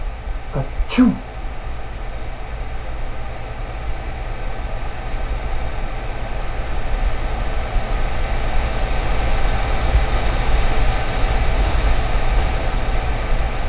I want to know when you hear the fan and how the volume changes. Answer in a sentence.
You can hear the fan from 0.0 to 13.6 s, getting louder.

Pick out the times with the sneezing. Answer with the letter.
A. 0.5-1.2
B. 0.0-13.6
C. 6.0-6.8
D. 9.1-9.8
A.